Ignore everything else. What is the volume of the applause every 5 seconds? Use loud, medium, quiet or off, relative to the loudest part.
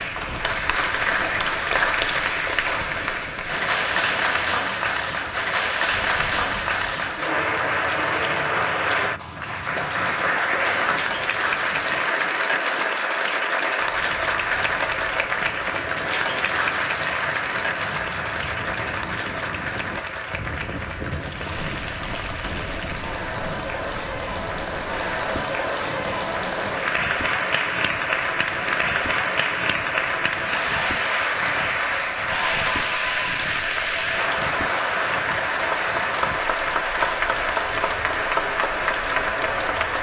loud, loud, loud, loud, medium, loud, loud, loud.